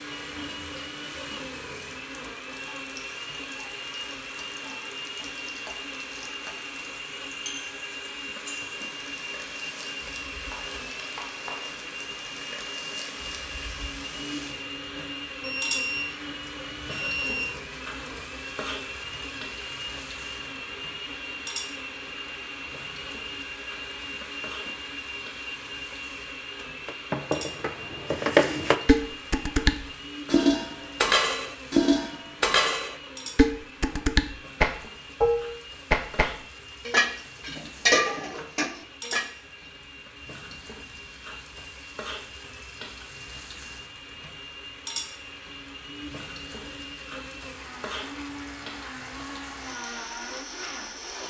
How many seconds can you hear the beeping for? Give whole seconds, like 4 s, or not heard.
2 s.